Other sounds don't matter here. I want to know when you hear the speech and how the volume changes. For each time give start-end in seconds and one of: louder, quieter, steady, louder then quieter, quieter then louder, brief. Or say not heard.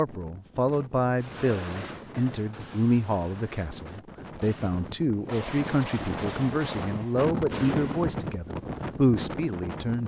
0.0-10.0 steady.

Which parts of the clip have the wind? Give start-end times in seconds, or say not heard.
0.0-10.0.